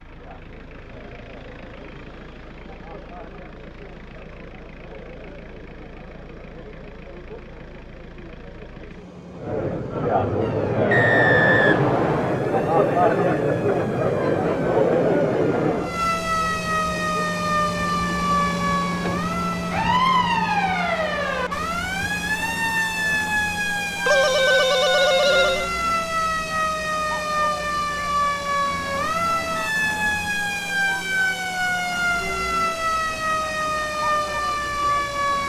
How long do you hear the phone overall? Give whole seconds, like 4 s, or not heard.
2 s.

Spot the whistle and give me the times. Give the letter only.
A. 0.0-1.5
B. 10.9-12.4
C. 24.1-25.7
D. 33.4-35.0
B.